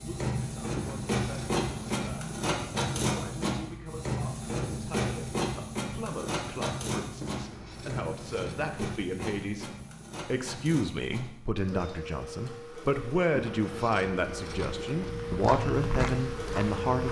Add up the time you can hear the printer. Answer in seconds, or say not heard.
17 s.